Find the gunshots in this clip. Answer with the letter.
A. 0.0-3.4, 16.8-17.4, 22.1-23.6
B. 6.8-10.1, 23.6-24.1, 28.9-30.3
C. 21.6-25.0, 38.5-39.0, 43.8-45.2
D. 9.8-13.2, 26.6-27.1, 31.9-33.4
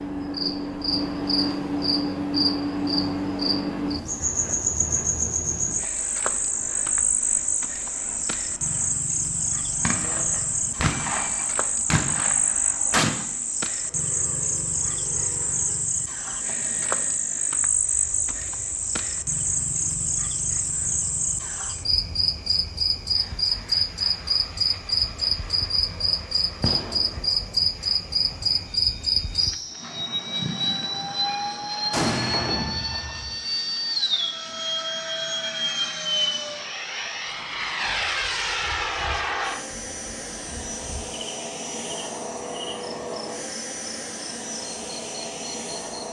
D.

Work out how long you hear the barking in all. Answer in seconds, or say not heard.
not heard.